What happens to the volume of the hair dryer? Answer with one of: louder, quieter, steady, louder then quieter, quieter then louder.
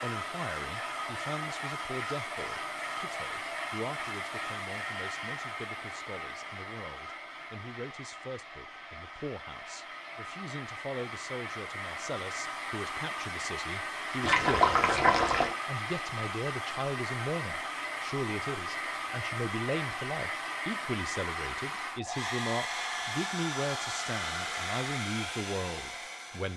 quieter then louder.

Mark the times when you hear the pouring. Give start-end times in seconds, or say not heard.
14.2-15.6.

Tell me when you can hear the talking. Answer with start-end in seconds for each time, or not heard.
0.0-26.5.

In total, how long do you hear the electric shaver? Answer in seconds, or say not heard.
not heard.